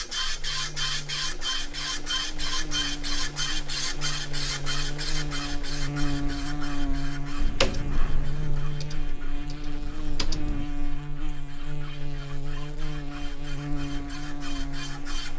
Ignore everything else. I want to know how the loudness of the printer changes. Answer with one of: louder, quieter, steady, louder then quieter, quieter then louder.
quieter then louder.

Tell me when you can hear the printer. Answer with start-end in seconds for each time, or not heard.
0.0-15.3.